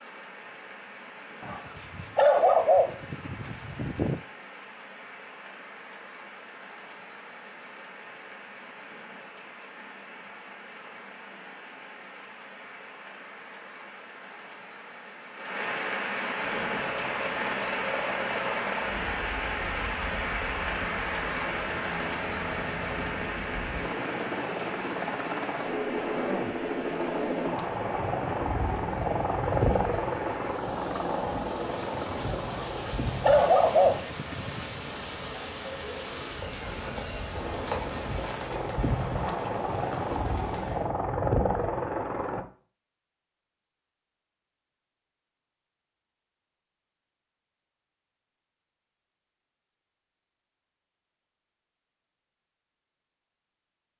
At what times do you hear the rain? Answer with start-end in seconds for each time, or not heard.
0.0-40.9.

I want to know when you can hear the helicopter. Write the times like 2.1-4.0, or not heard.
16.4-34.0, 37.3-42.5.